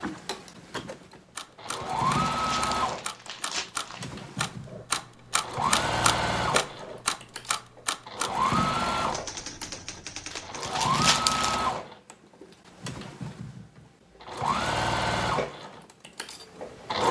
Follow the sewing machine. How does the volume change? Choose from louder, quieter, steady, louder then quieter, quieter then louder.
steady.